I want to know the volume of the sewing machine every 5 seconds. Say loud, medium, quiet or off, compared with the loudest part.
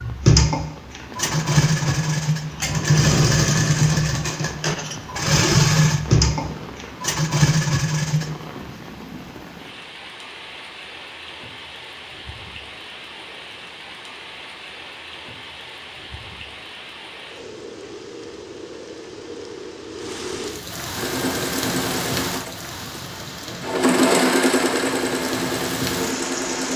loud, loud, off, off, loud, medium.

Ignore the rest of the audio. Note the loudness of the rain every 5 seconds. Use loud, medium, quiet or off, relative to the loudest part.
medium, medium, medium, medium, loud, loud.